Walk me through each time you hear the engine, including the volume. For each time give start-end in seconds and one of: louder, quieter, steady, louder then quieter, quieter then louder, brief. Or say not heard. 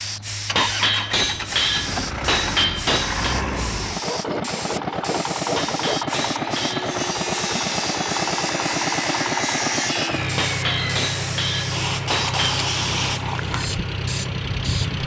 0.0-15.0 steady.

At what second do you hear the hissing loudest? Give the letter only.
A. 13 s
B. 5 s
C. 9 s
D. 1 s
A.